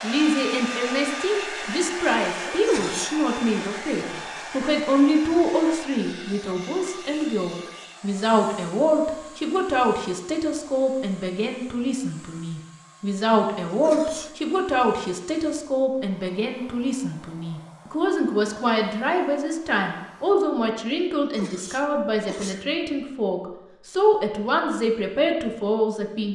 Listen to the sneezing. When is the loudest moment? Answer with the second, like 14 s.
3 s.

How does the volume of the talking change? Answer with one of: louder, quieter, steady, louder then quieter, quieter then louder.
steady.